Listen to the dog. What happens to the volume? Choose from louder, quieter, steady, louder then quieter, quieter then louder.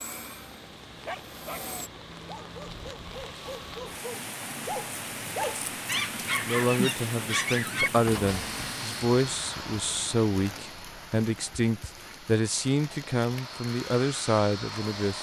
louder.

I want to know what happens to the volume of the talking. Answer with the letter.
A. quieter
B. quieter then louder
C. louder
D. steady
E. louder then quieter
D.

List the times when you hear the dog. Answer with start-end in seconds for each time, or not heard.
1.1-8.7.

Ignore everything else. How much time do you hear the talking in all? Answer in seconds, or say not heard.
9 s.